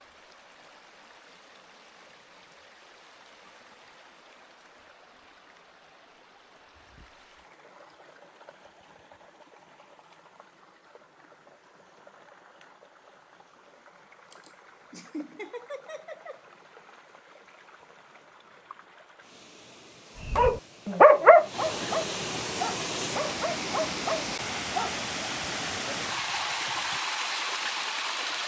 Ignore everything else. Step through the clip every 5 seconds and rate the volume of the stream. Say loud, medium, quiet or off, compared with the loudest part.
quiet, quiet, quiet, quiet, loud, loud.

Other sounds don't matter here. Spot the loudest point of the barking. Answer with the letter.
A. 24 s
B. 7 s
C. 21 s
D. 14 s
C.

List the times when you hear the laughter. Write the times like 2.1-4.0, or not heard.
14.3-16.4.